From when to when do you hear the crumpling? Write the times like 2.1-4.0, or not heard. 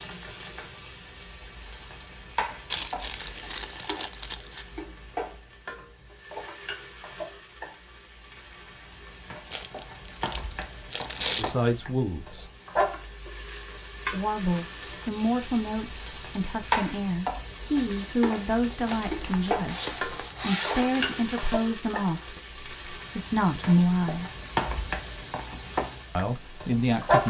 2.7-4.7, 9.5-11.5, 18.9-21.1.